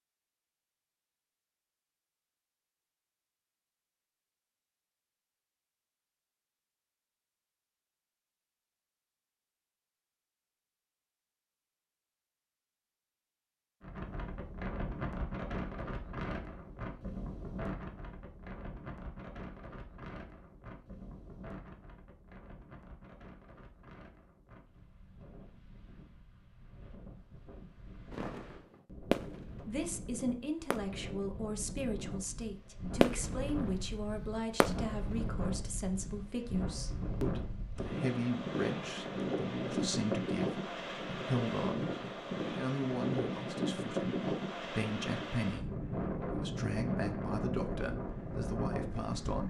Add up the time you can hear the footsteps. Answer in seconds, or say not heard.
not heard.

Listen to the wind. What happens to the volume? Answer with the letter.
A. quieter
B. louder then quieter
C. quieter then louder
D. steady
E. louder
C.